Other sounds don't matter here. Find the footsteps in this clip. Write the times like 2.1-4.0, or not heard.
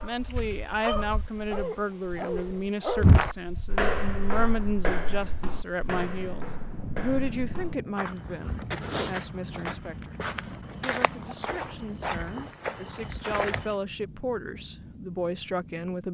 3.0-13.8.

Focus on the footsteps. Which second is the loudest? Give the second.
3 s.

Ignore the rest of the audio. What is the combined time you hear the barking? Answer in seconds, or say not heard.
3 s.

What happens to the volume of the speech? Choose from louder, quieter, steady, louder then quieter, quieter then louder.
quieter then louder.